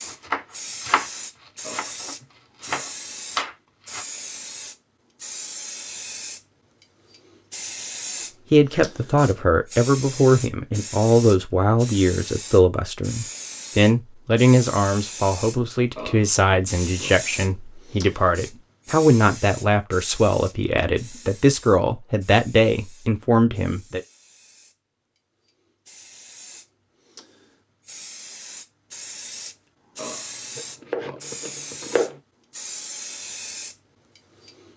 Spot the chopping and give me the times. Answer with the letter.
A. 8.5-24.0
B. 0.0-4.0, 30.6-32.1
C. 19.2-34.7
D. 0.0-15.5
B.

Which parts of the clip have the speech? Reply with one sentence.
You can hear the speech from 8.5 to 24.0 s.